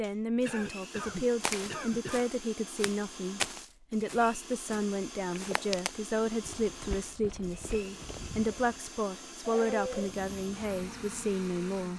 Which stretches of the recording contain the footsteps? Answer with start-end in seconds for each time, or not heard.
1.4-8.8.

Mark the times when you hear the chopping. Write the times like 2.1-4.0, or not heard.
not heard.